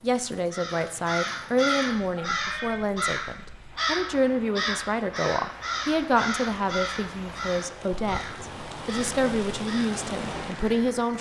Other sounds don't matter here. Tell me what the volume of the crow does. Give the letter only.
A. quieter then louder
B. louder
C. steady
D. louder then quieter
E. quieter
E.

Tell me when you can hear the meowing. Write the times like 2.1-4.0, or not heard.
2.1-2.9.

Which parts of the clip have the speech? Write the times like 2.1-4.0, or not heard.
0.0-11.1.